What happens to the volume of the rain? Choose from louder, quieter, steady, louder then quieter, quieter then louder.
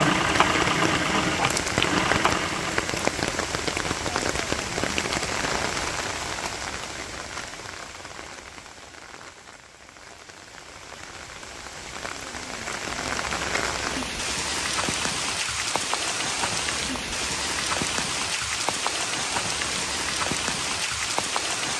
quieter then louder.